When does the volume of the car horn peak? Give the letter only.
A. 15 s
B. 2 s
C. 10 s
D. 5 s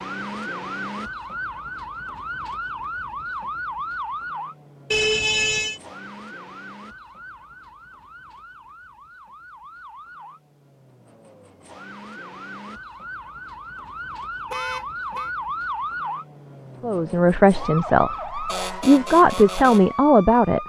D.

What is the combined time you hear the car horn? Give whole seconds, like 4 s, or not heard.
2 s.